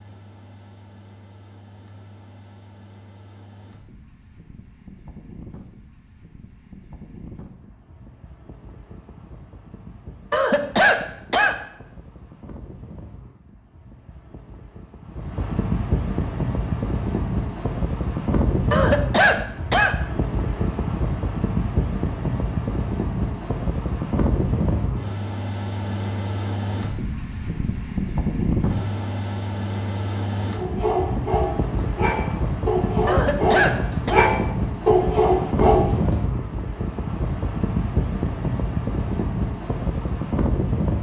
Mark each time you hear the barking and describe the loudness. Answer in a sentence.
You can hear the barking from 30.6 to 36.1 s, getting louder.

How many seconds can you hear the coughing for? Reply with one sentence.
You can hear the coughing for 4 seconds altogether.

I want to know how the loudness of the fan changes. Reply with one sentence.
The loudness of the fan goes up.